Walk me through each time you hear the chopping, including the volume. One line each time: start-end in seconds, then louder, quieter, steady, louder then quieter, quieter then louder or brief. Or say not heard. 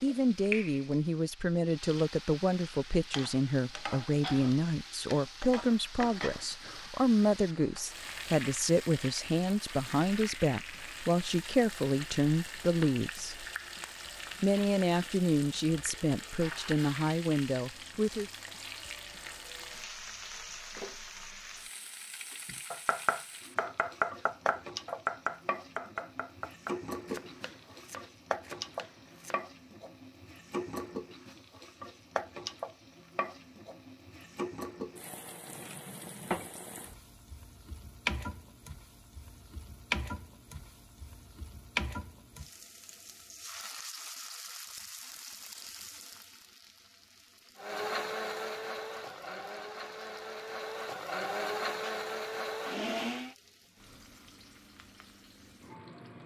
22.4-29.4 quieter.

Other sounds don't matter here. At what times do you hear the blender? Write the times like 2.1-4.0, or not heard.
47.5-53.4.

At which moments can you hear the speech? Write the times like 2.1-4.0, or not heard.
0.0-13.4, 14.4-18.3.